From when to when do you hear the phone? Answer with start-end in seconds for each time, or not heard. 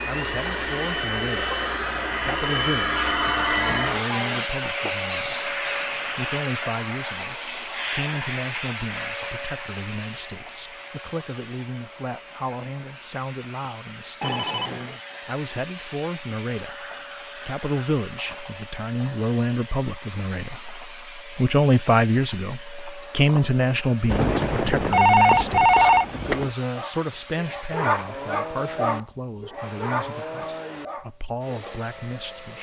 2.9-4.0, 14.2-15.0, 24.1-26.5.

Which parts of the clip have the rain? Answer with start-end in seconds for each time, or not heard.
not heard.